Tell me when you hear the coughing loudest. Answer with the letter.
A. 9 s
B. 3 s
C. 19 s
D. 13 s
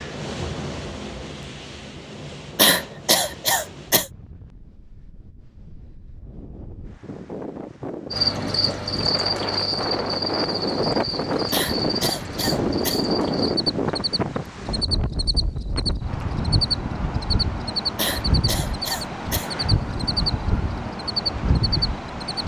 B.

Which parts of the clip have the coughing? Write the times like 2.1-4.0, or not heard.
2.5-4.1, 11.5-13.0, 17.9-19.5.